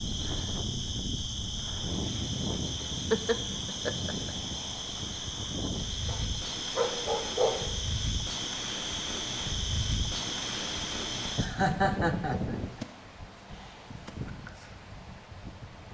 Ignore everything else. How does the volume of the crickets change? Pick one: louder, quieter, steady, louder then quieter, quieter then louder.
steady.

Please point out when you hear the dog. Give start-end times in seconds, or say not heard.
6.0-7.7.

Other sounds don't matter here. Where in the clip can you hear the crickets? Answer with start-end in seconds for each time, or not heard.
0.0-11.5.